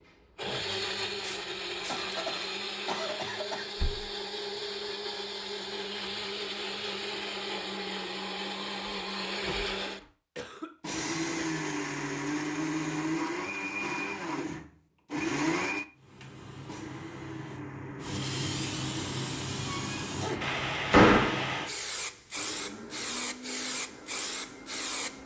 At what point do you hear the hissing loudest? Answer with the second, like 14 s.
21 s.